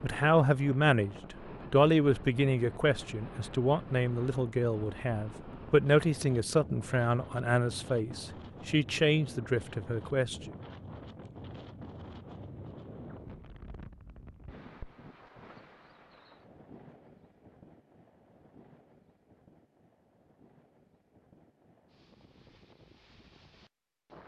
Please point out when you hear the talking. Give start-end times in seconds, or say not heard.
0.0-10.6.